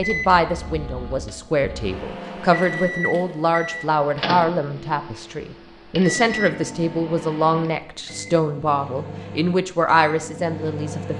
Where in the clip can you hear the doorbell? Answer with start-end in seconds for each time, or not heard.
not heard.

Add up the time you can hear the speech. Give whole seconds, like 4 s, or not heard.
11 s.